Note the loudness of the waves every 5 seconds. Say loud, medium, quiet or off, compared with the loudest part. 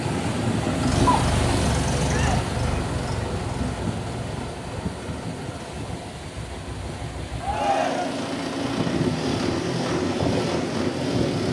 loud, medium, loud.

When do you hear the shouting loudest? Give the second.
8 s.